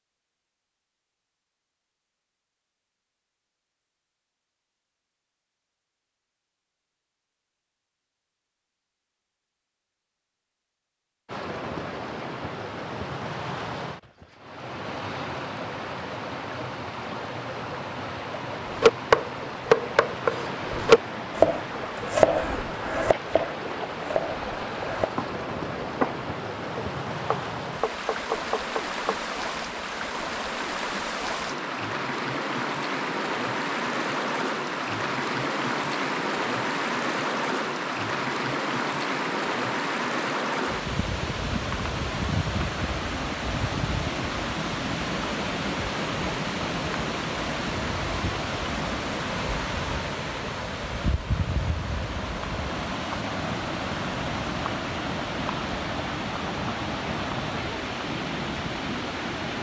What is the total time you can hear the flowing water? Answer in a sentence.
The flowing water can be heard for 48 seconds in total.